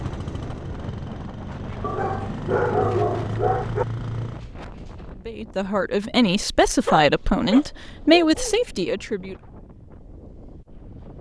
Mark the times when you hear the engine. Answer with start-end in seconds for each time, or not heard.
0.0-4.5.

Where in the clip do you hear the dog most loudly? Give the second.
3 s.